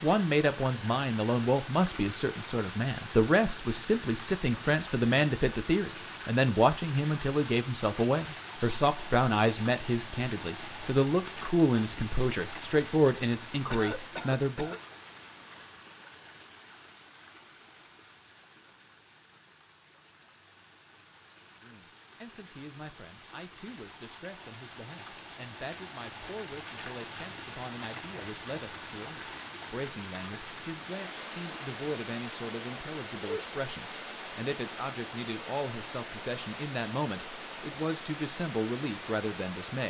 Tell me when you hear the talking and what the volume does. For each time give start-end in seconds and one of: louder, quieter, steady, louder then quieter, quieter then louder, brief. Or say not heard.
0.0-14.8 steady
21.6-39.8 louder.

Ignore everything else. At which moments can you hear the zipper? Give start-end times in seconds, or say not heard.
not heard.